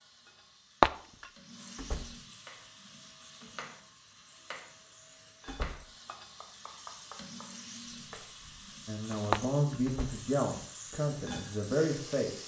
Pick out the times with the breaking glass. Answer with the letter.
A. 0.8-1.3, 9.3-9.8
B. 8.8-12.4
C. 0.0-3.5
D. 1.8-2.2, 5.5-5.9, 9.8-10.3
A.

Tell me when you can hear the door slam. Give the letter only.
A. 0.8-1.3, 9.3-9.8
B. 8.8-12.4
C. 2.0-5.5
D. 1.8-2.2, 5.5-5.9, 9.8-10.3
D.